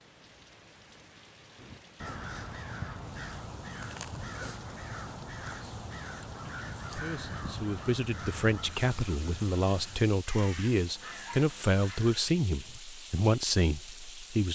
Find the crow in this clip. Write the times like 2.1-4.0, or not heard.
1.6-12.8.